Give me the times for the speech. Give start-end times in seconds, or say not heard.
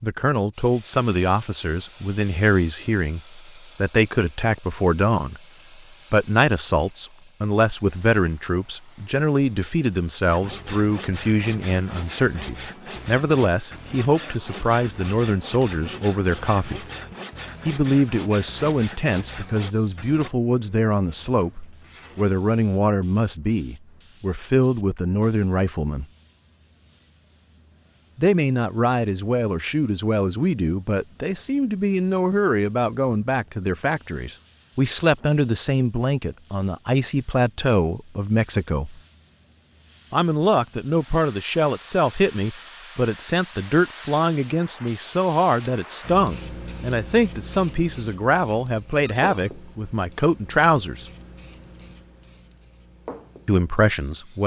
0.0-5.4, 6.1-16.9, 17.6-26.1, 28.1-39.0, 40.1-51.0, 53.5-54.4.